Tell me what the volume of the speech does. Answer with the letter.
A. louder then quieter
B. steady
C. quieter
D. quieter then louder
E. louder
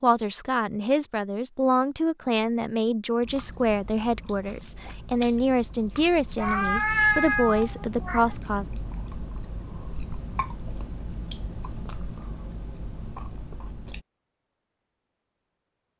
B.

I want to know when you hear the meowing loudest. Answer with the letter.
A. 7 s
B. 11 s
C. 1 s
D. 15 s
A.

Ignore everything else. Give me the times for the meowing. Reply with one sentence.
The meowing can be heard from 6.3 to 8.3 s.